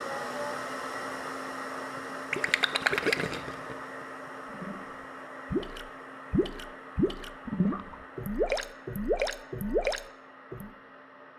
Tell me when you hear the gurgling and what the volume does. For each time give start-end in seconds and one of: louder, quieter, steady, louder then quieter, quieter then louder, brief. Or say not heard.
1.9-10.7 quieter then louder.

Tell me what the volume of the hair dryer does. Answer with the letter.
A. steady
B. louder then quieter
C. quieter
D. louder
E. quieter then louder
C.